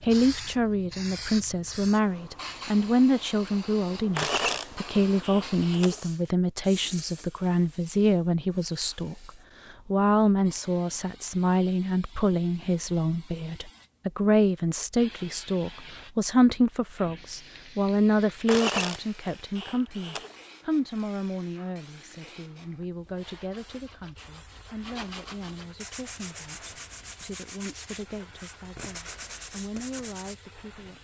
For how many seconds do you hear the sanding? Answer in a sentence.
The sanding can be heard for 7 seconds in total.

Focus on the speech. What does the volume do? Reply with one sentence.
The volume of the speech goes down.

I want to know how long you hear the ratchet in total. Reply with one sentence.
The ratchet can be heard for 4 seconds in total.